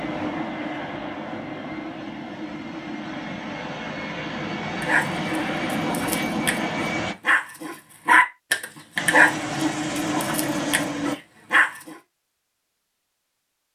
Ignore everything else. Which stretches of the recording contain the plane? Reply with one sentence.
The plane can be heard from 0.0 to 7.2 s and from 8.9 to 11.2 s.